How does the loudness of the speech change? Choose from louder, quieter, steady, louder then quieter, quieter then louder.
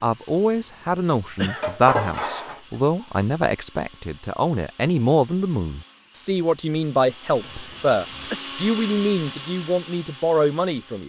steady.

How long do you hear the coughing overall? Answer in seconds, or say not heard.
2 s.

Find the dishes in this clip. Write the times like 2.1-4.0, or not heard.
1.6-3.0.